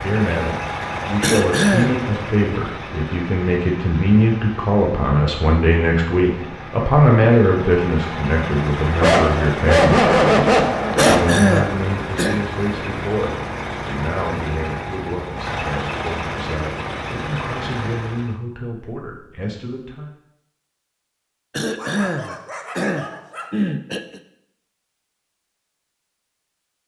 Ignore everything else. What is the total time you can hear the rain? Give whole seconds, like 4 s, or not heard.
not heard.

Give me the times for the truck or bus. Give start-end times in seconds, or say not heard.
0.0-18.4.